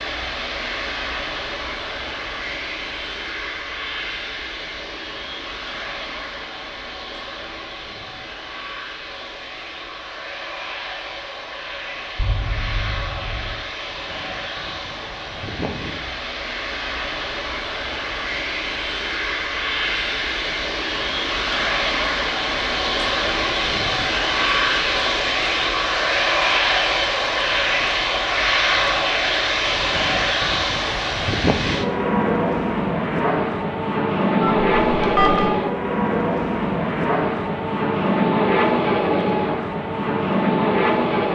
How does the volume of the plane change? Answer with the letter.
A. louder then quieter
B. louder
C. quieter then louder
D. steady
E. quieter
B.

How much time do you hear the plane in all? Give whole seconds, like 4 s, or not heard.
41 s.